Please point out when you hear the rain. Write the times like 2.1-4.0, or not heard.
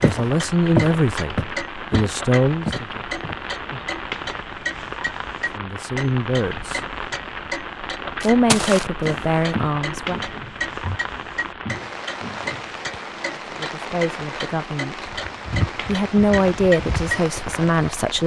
0.0-18.2.